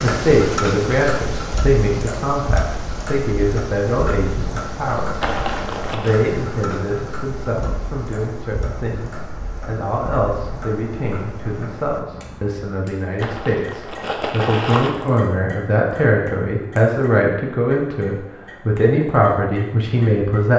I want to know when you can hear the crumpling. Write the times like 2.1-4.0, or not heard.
5.2-6.2, 13.2-14.9.